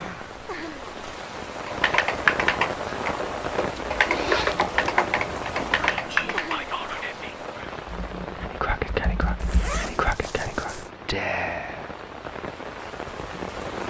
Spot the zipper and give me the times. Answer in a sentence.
You can hear the zipper from 3.8 to 4.8 s and from 9.3 to 10.9 s.